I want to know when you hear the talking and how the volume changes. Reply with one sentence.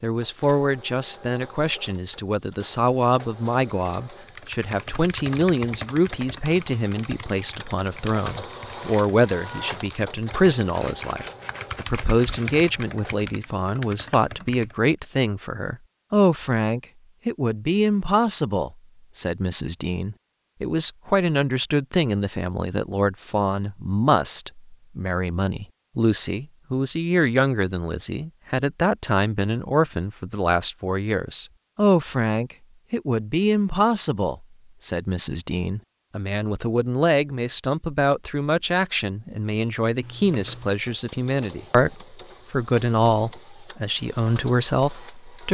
You can hear the talking from 0.0 to 45.4 s, at a steady volume.